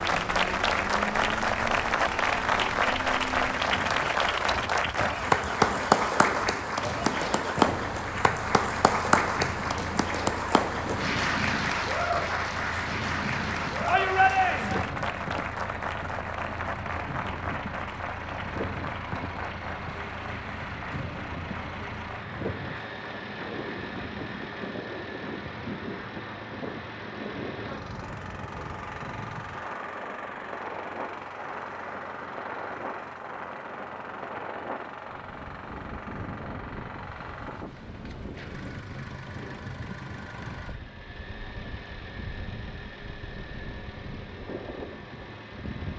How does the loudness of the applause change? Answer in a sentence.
The loudness of the applause goes down.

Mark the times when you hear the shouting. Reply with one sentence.
You can hear the shouting from 13.8 to 14.8 s.